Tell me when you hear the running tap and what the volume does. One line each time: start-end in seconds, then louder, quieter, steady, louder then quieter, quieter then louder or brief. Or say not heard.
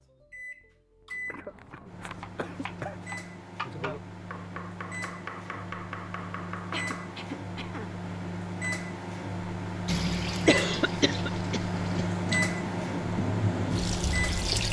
9.8-14.6 quieter then louder.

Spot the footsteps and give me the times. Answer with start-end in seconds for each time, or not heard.
not heard.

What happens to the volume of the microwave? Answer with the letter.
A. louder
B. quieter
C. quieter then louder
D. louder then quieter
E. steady
A.